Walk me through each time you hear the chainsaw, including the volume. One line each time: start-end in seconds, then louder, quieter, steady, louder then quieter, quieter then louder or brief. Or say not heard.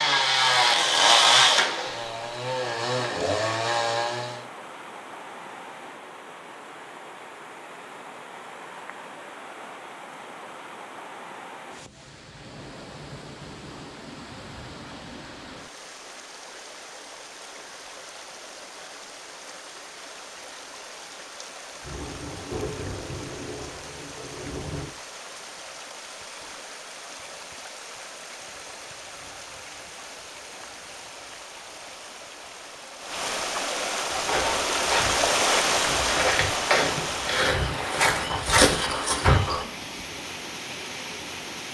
0.0-4.5 quieter then louder.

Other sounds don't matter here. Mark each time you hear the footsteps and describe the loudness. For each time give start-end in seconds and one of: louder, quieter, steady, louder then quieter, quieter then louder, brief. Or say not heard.
34.1-39.6 louder.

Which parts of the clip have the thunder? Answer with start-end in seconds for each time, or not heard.
21.8-24.9.